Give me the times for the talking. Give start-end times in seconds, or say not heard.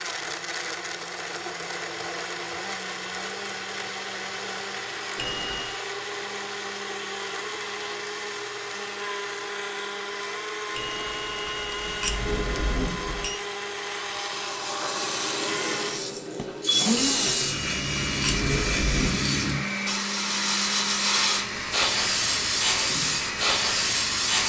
not heard.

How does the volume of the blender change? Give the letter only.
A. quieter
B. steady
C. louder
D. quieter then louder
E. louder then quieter
B.